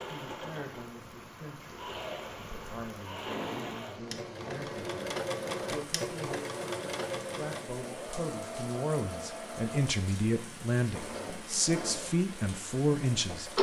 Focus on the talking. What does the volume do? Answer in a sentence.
The loudness of the talking goes up.